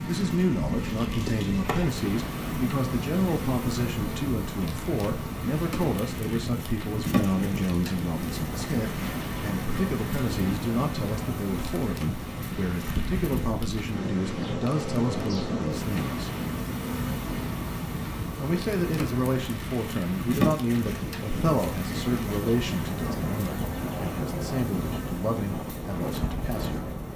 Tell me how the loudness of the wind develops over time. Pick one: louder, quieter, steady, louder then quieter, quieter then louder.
steady.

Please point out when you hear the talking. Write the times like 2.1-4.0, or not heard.
0.0-16.3, 18.4-26.9.